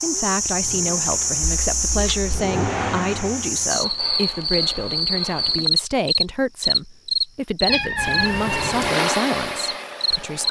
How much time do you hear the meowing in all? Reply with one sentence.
The meowing can be heard for 2 seconds in total.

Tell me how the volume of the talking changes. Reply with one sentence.
The volume of the talking stays about the same.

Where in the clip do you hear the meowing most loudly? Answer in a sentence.
The loudest moment of the meowing is at 8 seconds.